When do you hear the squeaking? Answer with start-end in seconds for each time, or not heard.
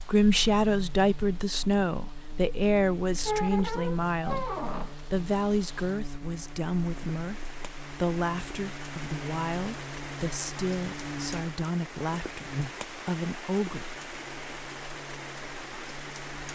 3.2-5.0.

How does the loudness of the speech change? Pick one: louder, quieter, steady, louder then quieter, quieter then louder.
quieter.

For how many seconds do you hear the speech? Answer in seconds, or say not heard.
13 s.